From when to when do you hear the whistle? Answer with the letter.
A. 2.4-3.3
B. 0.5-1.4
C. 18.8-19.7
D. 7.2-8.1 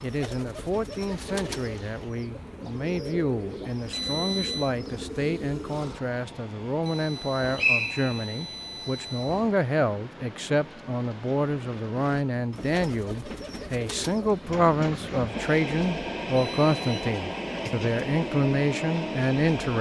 D.